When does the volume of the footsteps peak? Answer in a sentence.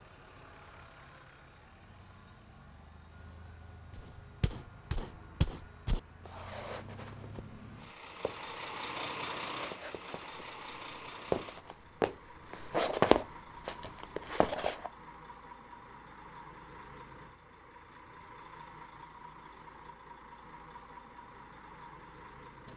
The loudest moment of the footsteps is at 13 seconds.